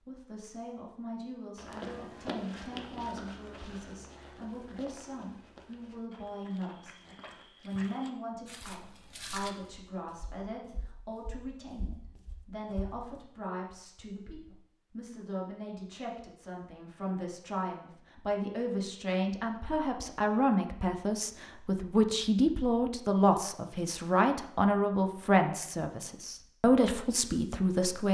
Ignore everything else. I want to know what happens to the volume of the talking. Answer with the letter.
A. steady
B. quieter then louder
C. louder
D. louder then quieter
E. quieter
C.